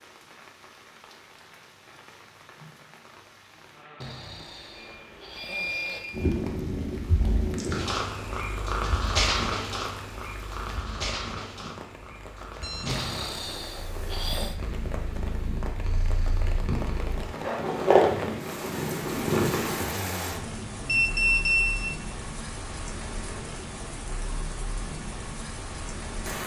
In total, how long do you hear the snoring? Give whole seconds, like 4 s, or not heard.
5 s.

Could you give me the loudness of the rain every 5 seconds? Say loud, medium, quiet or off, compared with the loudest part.
quiet, quiet, medium, loud, loud, loud.